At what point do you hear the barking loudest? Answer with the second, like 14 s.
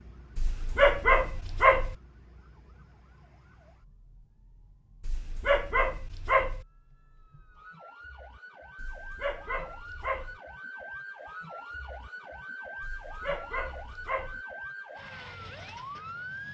1 s.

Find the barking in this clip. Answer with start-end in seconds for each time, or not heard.
0.3-1.9, 5.0-6.7, 8.8-10.4, 12.8-14.4.